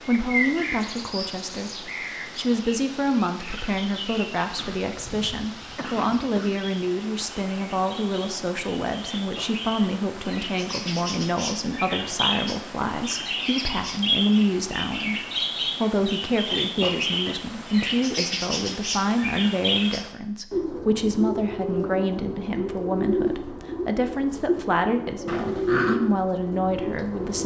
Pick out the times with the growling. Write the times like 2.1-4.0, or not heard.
25.2-26.0.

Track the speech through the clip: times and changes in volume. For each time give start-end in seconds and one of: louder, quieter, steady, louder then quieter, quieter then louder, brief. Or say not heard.
0.1-27.4 steady.